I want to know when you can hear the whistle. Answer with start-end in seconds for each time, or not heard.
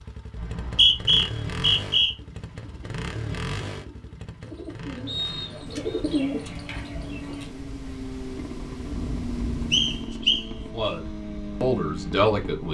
0.3-2.1, 5.0-6.0, 9.7-10.4.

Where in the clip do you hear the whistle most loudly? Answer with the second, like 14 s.
1 s.